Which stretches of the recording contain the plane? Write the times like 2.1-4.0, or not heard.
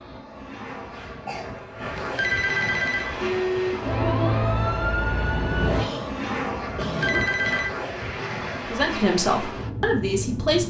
0.0-10.6.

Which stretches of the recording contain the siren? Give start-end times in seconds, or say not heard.
3.2-5.8.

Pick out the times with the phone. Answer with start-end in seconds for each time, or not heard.
1.9-3.1, 6.8-7.8.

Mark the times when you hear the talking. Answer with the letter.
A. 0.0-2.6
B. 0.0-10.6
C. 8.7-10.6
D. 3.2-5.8
C.